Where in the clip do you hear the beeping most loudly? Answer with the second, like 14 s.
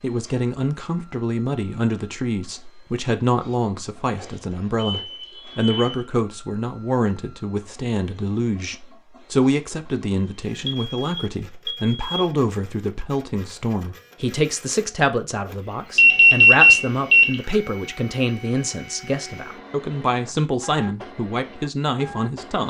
17 s.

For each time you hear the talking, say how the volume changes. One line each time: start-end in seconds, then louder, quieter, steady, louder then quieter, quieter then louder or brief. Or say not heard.
0.0-22.6 steady.